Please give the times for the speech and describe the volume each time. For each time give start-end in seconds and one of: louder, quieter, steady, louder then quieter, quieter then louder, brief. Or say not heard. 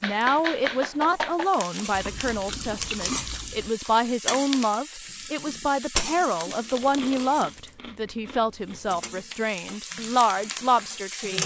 0.0-11.4 steady.